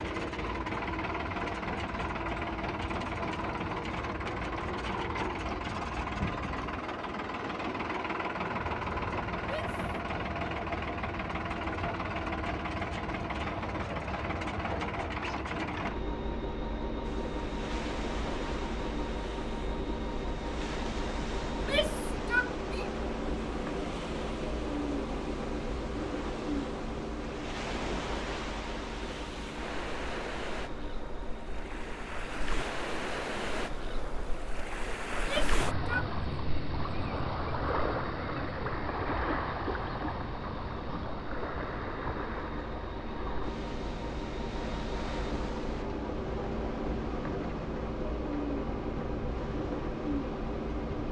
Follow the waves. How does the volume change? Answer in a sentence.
The loudness of the waves goes up, then down.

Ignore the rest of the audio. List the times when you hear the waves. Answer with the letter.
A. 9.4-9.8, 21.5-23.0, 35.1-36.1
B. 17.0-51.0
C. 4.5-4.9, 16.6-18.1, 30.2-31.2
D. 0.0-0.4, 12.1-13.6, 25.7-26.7
B.